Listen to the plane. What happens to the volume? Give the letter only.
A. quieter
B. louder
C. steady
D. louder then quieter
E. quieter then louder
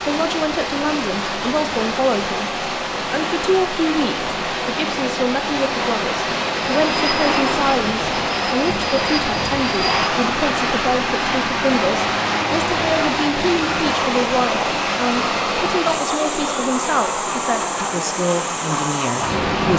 C.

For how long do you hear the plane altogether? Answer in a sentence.
You can hear the plane for 13 seconds altogether.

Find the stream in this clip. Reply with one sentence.
The stream can be heard from 0.0 to 19.7 s.